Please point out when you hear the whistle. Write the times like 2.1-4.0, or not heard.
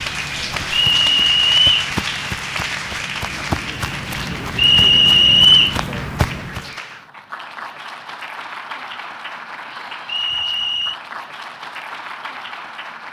0.8-1.9, 4.5-5.8, 10.1-11.0.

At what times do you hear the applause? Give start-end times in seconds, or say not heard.
0.0-13.0.